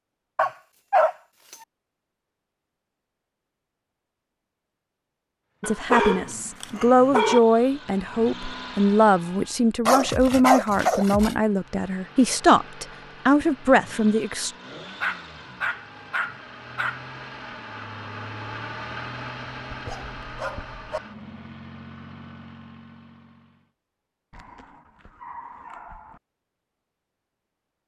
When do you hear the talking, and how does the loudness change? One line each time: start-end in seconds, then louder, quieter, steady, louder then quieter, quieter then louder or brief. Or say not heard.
5.6-14.5 steady.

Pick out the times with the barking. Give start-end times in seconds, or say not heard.
0.3-1.6, 5.6-7.4, 9.8-11.3, 15.0-17.0, 19.7-21.0, 24.3-26.2.